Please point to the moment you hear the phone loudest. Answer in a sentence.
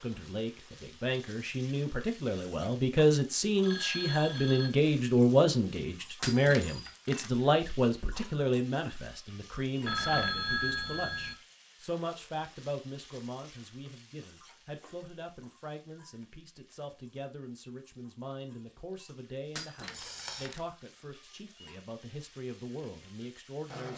The loudest moment of the phone is at 10 seconds.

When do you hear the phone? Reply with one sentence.
The phone can be heard from 3.6 to 4.7 s, from 9.8 to 11.3 s and from 19.9 to 20.5 s.